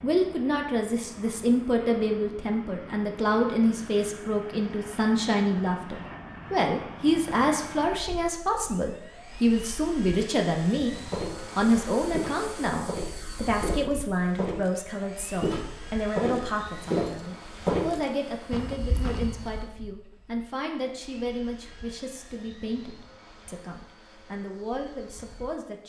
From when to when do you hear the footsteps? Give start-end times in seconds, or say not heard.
11.1-19.4.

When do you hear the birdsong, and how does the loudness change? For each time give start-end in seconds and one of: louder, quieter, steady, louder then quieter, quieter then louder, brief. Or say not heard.
not heard.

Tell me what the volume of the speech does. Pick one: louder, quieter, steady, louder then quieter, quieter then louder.
quieter.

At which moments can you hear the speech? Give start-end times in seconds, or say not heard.
0.0-25.8.